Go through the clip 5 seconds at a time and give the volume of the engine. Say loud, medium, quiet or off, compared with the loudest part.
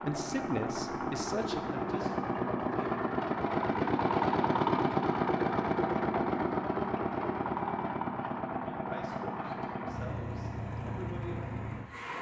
loud, loud, medium.